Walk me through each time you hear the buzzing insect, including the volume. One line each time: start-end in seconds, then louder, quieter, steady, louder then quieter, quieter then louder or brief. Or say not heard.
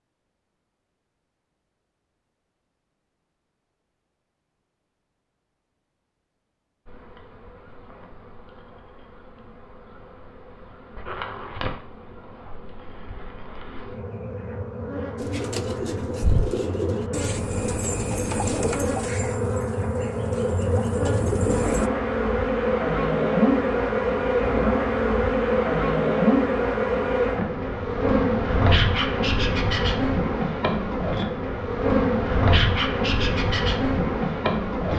6.8-34.9 louder.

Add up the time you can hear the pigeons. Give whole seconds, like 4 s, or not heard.
7 s.